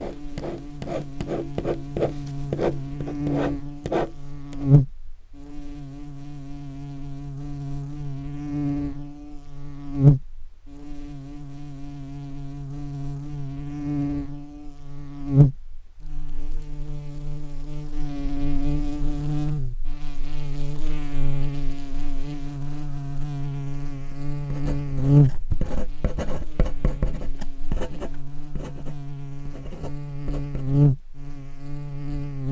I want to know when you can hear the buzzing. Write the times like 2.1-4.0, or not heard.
0.0-32.4.